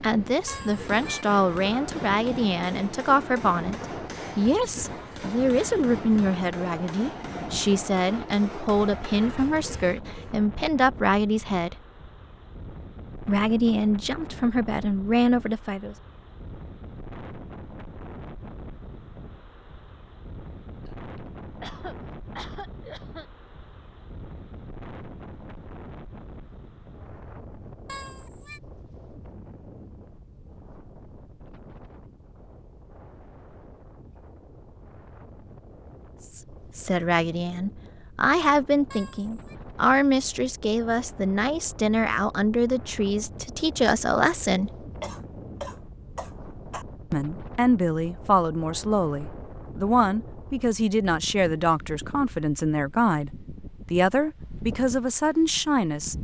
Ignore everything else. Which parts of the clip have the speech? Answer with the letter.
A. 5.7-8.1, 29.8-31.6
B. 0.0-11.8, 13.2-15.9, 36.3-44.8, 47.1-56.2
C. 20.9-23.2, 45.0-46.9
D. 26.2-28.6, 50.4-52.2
B.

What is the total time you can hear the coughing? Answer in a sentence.
You can hear the coughing for 4 seconds altogether.